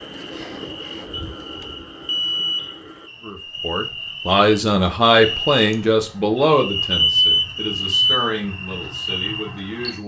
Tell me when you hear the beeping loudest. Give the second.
7 s.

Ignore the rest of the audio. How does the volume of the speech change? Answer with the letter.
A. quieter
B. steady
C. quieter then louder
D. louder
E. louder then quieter
A.